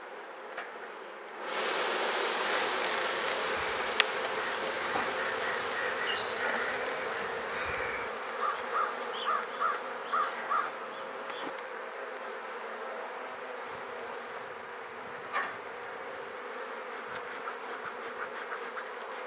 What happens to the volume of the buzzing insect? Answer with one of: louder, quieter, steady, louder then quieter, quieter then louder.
quieter.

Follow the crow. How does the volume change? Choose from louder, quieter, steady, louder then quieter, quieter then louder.
louder.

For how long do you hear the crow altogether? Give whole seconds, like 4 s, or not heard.
9 s.